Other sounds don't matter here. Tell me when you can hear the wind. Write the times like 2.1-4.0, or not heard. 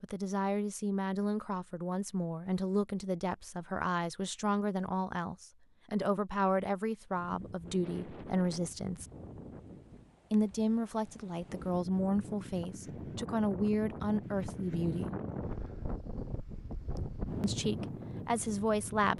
7.2-19.1.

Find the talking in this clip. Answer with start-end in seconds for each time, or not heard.
0.0-9.1, 10.3-15.2, 17.4-19.1.